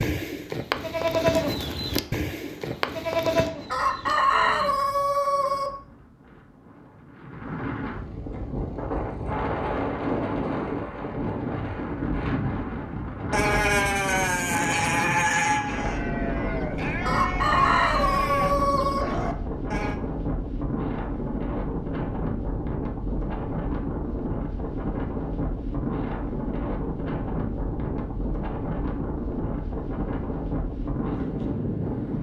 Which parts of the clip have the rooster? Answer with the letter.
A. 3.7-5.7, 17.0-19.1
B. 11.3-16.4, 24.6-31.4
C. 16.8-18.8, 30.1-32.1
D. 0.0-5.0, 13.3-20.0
A.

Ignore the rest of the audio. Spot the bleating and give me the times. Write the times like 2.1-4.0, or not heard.
0.0-5.0, 13.3-20.0.